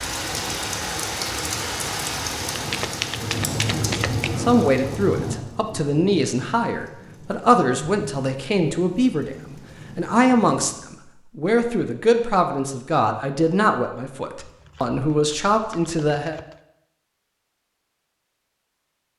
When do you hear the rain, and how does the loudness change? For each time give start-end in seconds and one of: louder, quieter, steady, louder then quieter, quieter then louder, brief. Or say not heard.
0.0-10.9 quieter.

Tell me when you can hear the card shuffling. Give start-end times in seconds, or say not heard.
2.5-4.4, 14.3-16.6.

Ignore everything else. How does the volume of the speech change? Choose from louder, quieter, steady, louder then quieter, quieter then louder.
steady.